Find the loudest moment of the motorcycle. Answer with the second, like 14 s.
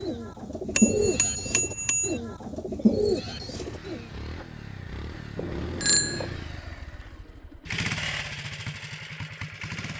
8 s.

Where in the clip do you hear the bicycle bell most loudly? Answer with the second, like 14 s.
6 s.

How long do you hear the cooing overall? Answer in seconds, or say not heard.
4 s.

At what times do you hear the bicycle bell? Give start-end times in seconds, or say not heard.
0.8-2.2, 5.3-6.3.